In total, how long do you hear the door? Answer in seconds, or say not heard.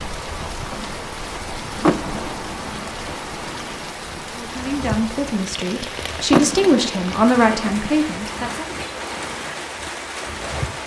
2 s.